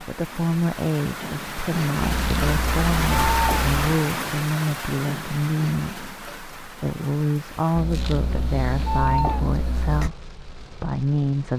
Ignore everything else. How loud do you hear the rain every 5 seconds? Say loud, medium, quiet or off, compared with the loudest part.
loud, medium, quiet.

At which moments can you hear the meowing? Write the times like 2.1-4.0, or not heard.
2.0-3.9, 7.8-10.1.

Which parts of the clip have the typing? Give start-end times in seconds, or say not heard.
not heard.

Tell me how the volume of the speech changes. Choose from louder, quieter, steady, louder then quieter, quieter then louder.
steady.